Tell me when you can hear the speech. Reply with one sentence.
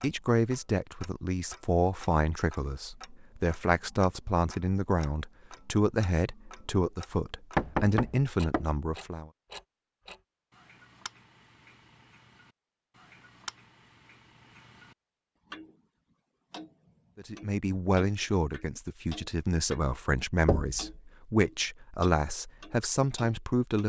You can hear the speech from 0.0 to 9.3 s and from 17.1 to 23.8 s.